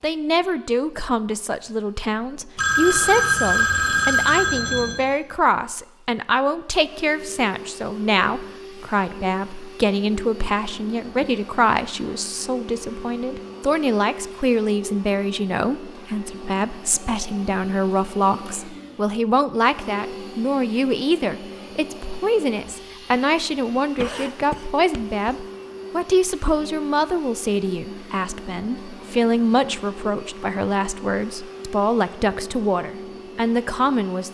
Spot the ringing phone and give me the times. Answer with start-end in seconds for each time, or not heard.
2.5-5.0.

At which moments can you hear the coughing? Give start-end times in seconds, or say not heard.
23.9-25.4.